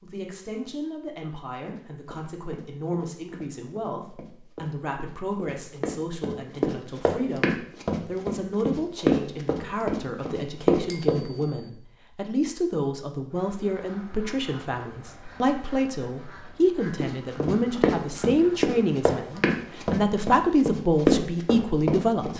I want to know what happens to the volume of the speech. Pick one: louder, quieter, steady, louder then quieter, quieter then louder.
louder.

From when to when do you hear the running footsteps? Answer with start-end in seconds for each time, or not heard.
1.6-11.5, 17.0-22.3.